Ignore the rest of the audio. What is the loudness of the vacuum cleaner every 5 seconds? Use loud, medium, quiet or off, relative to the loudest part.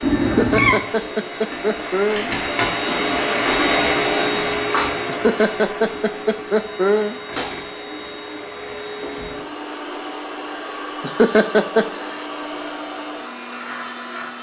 loud, medium, medium.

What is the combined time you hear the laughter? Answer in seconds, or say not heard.
5 s.